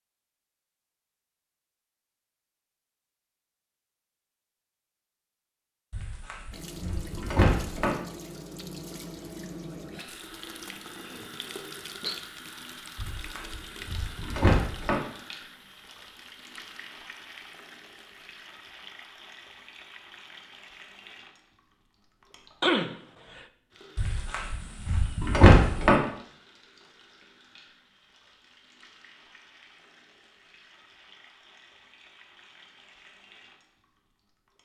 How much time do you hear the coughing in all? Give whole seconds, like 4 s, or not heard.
2 s.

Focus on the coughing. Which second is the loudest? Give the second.
23 s.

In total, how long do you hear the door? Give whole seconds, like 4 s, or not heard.
6 s.